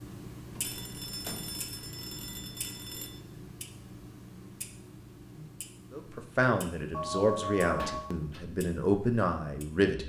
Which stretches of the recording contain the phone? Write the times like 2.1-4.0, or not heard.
0.6-3.2, 6.9-8.2.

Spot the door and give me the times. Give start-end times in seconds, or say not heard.
0.5-1.5, 7.8-8.4.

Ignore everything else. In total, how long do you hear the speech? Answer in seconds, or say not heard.
4 s.